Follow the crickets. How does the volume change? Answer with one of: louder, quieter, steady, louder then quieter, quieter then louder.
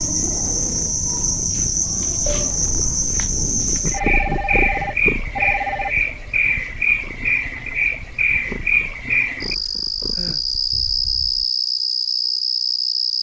steady.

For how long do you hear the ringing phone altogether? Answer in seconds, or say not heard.
2 s.